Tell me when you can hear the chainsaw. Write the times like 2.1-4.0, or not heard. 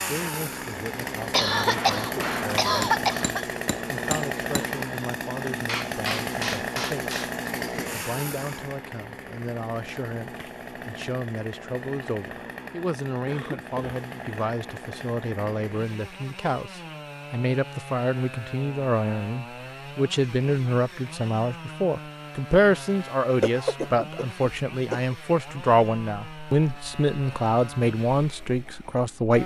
0.0-29.4.